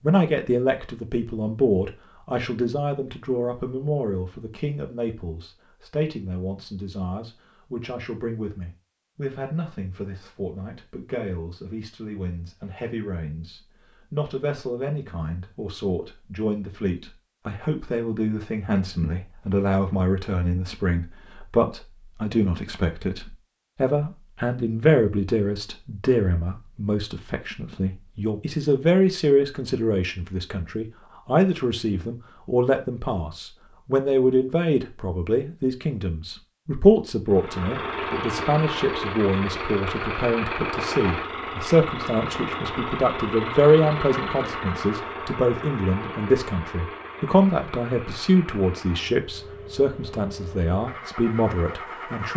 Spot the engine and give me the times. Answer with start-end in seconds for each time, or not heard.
37.3-52.3.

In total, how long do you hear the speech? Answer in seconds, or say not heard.
52 s.